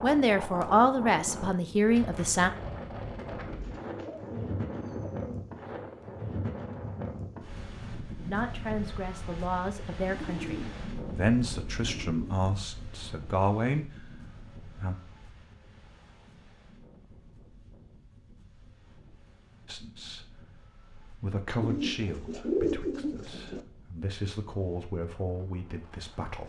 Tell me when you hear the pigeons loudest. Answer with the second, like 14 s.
23 s.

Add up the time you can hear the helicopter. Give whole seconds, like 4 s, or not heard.
not heard.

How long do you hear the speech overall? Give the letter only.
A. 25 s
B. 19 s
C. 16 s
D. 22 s
C.